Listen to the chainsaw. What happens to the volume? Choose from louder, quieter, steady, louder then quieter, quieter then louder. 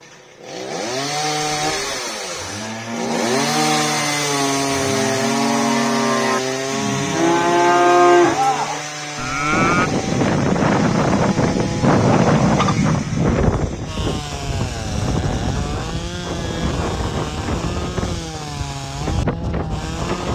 quieter.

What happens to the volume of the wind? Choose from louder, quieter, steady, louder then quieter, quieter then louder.
quieter.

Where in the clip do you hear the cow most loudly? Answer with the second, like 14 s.
8 s.